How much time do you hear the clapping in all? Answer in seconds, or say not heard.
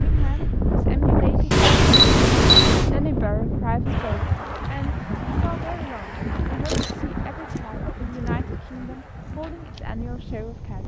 not heard.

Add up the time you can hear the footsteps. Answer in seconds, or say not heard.
not heard.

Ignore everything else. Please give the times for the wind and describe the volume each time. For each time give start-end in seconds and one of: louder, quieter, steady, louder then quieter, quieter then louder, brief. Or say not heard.
0.0-10.8 quieter.